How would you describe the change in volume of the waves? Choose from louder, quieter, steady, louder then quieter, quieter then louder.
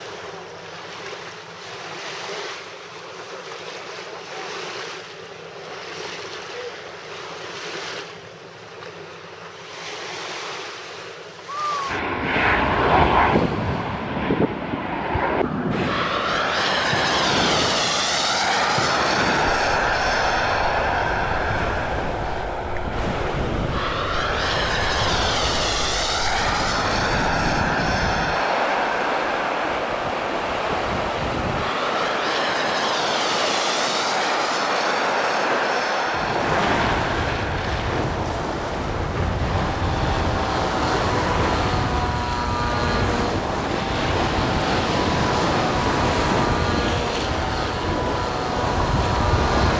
louder.